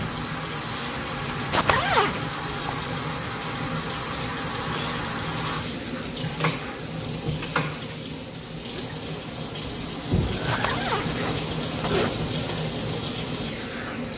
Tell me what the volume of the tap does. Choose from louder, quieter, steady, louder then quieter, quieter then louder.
steady.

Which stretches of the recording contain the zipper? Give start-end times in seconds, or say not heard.
1.3-2.3, 10.3-12.2.